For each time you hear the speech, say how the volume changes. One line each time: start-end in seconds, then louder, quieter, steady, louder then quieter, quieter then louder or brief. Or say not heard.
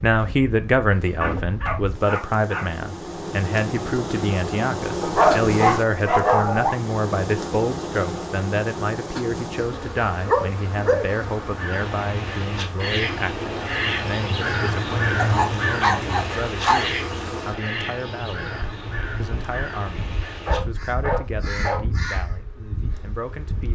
0.0-23.6 quieter.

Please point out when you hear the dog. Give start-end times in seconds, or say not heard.
1.2-2.6, 5.0-6.8, 9.7-11.2, 15.2-16.9, 20.4-21.8.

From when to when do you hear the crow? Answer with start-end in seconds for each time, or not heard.
11.4-22.4.